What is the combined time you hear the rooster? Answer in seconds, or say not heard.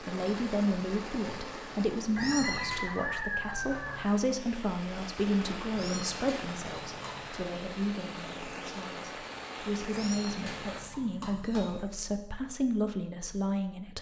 2 s.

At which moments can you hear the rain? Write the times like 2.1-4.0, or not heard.
0.0-10.8.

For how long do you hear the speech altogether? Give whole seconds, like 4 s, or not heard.
14 s.